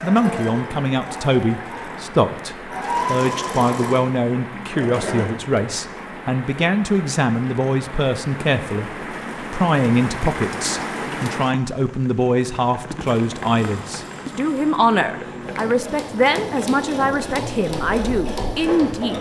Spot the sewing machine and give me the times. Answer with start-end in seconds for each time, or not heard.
0.0-5.3, 12.9-19.1.